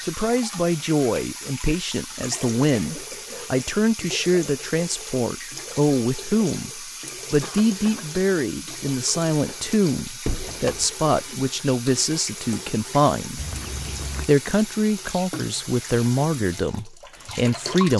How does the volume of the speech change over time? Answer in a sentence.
The volume of the speech stays about the same.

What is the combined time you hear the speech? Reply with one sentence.
You can hear the speech for 17 seconds altogether.